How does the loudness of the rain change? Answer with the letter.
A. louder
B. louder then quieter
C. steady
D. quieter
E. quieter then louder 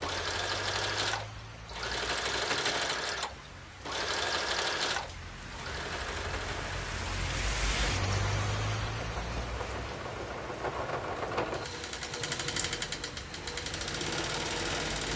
B.